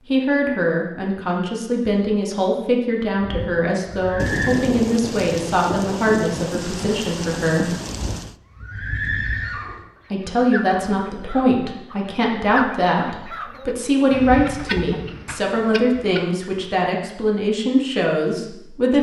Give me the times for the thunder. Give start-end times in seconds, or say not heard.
4.2-8.3.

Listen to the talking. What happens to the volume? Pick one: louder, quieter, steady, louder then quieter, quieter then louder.
steady.